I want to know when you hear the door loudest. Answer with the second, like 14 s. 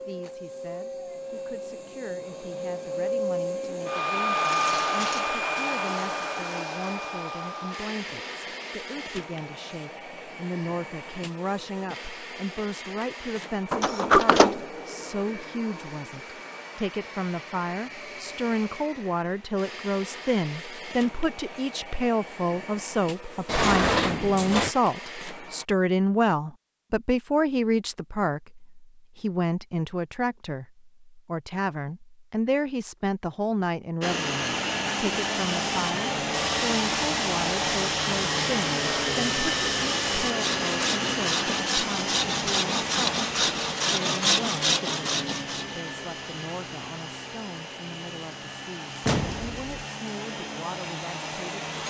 14 s.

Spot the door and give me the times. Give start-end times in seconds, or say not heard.
13.7-14.6, 23.4-24.7, 49.0-49.6.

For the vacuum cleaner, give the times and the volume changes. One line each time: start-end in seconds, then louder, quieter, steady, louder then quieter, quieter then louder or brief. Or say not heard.
0.0-25.6 quieter
34.0-51.8 quieter.